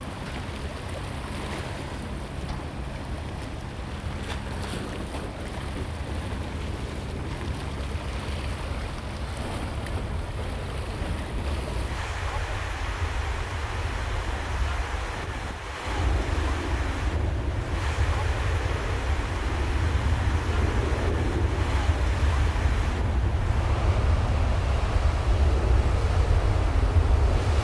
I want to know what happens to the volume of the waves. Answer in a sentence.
The volume of the waves stays about the same.